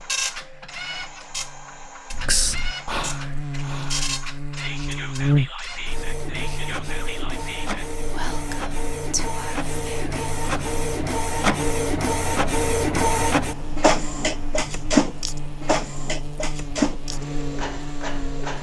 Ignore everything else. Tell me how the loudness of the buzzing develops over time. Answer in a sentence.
The loudness of the buzzing goes up, then down.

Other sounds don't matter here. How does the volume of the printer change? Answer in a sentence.
The loudness of the printer goes up.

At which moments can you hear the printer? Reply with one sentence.
The printer can be heard from 0.0 to 18.5 s.